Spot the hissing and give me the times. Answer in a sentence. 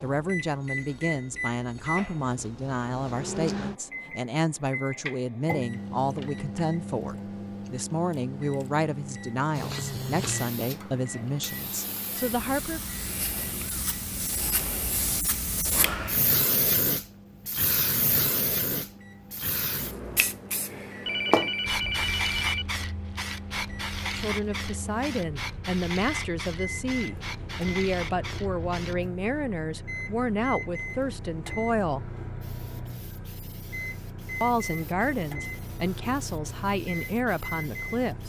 The hissing can be heard from 9.5 to 29.1 s and from 32.4 to 38.2 s.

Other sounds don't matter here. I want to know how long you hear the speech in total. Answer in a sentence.
The speech can be heard for 25 seconds in total.